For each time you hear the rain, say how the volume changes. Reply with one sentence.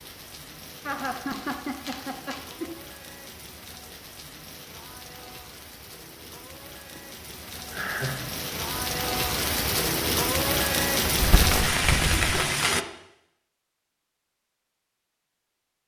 You can hear the rain from 0.0 to 12.8 s, getting louder.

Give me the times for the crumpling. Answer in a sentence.
You can hear the crumpling from 0.9 to 2.5 s and from 11.1 to 12.4 s.